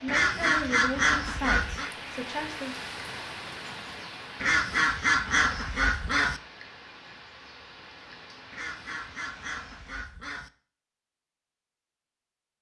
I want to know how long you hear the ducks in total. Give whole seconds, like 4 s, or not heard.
6 s.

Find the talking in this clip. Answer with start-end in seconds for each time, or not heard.
0.0-2.8.